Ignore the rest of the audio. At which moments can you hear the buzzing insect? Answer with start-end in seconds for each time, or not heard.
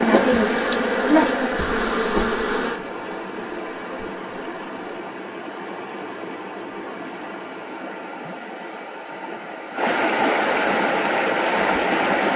0.0-5.0.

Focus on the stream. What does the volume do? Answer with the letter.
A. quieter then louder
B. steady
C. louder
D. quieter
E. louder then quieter
C.